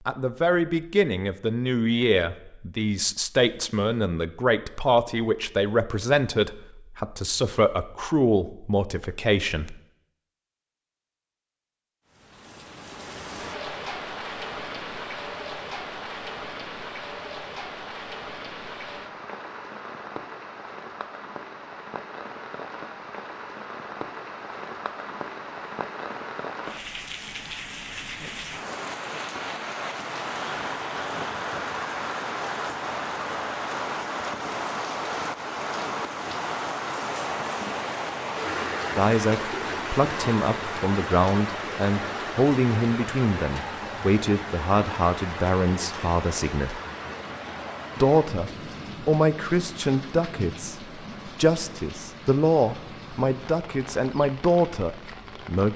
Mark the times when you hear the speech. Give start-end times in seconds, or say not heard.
0.1-9.8, 39.0-46.8, 48.0-55.7.